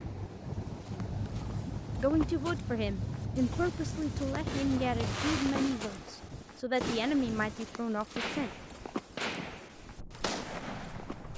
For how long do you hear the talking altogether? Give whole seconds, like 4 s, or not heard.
7 s.